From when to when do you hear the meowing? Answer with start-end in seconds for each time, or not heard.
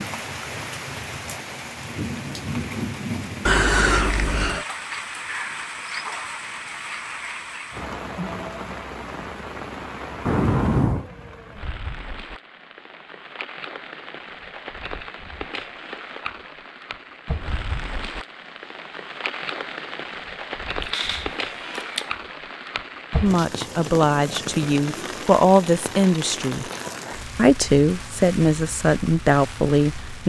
3.5-4.7, 10.2-11.1, 20.8-22.1.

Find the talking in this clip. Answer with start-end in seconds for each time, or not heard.
23.2-26.6, 27.4-30.2.